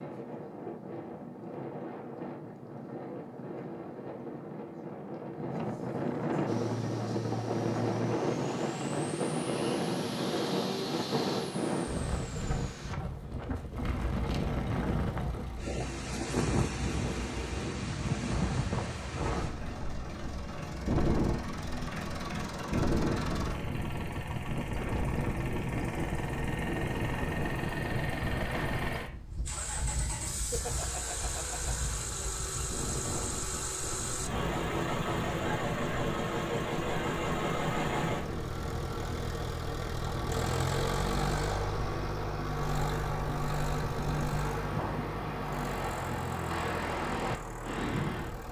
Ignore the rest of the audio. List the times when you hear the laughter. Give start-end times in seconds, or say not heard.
30.3-31.8.